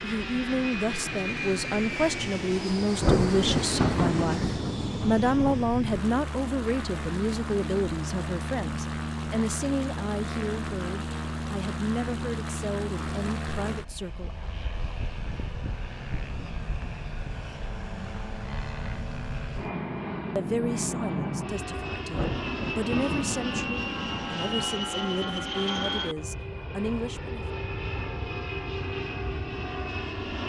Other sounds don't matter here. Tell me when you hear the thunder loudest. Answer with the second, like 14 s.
3 s.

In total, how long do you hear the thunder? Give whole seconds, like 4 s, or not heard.
5 s.